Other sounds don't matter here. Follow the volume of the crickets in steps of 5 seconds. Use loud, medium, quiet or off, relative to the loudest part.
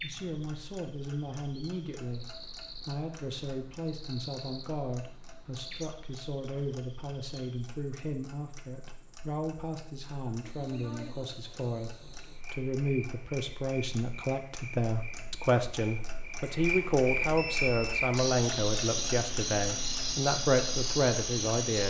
quiet, quiet, quiet, loud, loud.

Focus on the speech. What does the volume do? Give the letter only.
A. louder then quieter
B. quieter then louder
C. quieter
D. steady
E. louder
E.